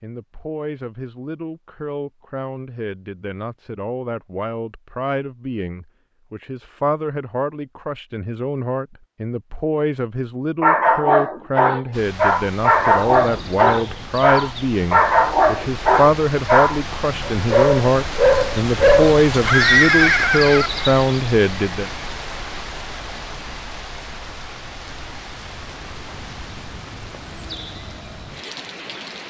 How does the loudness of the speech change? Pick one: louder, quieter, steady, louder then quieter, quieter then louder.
louder.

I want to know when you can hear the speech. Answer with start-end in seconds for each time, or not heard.
0.0-21.9.